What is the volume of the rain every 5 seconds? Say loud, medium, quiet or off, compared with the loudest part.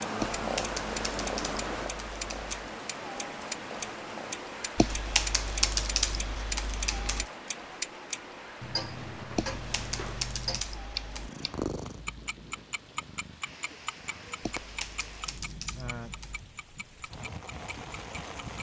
loud, loud, medium, loud.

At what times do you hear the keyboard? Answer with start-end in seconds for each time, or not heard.
0.2-2.5, 4.8-7.2, 9.3-11.3, 14.4-16.4.